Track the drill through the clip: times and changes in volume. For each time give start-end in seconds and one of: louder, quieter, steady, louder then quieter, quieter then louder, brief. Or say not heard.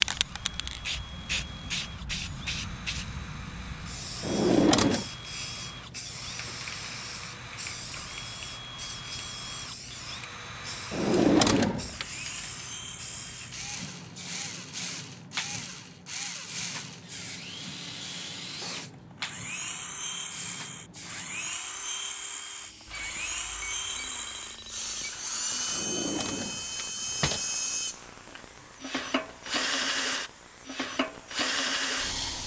0.1-32.4 louder.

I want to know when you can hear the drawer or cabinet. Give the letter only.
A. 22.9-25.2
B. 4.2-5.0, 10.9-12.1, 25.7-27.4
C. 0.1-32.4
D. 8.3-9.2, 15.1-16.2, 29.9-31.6
B.